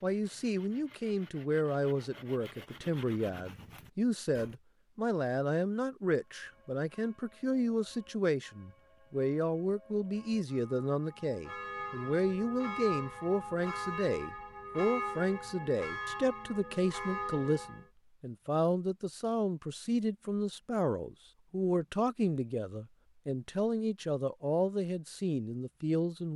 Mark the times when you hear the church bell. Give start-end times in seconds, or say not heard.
6.2-17.9.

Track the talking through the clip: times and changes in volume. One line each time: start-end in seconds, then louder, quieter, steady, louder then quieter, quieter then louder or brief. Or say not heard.
0.0-26.3 steady.